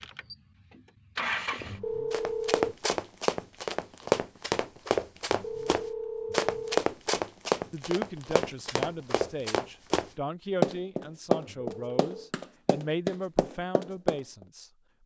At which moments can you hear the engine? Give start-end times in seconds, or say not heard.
0.0-1.8.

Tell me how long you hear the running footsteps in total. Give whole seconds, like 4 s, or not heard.
12 s.